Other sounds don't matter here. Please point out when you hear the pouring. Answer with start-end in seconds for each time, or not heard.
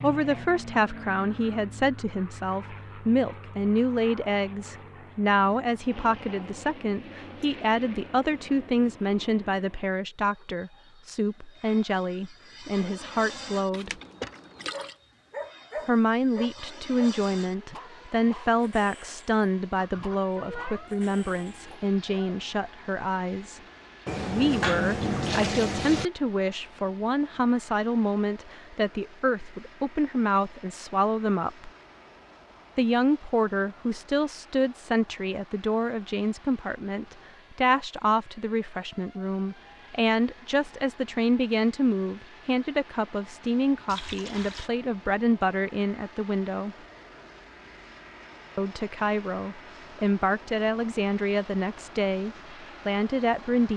13.7-14.9, 24.1-26.1, 43.9-44.7.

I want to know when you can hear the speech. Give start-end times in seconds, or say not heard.
0.0-13.9, 15.8-23.6, 24.2-31.7, 32.8-46.8, 48.5-53.7.